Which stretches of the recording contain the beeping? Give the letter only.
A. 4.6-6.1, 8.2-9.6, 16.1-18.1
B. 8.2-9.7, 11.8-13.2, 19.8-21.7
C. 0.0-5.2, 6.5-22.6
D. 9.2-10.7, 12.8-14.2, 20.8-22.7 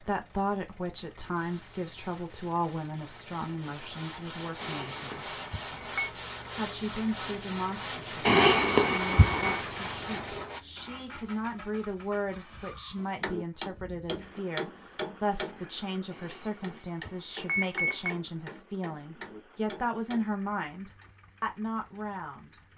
A.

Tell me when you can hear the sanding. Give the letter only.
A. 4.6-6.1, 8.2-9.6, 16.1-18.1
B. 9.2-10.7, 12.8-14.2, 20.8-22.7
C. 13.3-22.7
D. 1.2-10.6
D.